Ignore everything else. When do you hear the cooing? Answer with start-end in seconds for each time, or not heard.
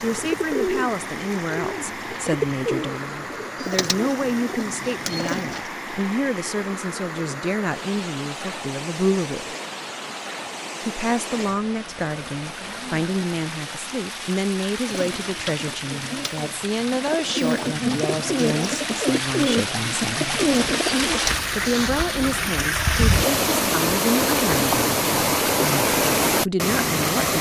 0.0-5.7, 14.8-21.4.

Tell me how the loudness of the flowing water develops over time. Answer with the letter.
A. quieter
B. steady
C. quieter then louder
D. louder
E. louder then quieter
D.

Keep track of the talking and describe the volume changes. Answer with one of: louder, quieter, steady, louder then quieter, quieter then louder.
steady.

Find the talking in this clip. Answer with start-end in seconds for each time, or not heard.
0.0-9.6, 10.8-20.4, 21.5-27.3.